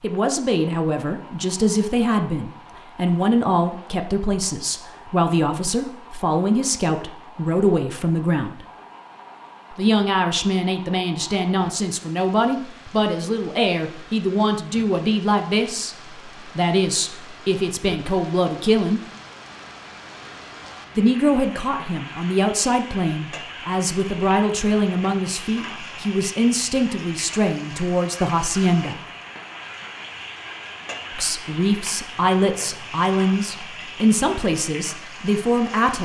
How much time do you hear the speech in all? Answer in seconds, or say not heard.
31 s.